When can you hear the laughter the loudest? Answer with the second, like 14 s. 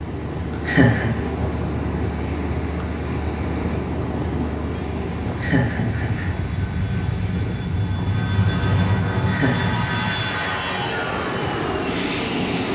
1 s.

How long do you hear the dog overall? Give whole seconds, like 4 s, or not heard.
not heard.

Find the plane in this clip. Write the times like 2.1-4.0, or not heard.
0.0-12.6.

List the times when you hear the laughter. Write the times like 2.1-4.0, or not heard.
0.7-1.1, 5.4-6.3, 9.2-10.2.